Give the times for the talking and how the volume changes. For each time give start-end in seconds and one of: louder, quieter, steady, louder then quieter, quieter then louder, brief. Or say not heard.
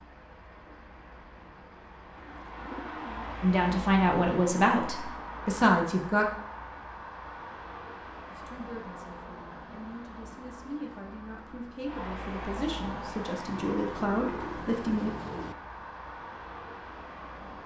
3.4-6.2 brief
8.2-15.1 louder.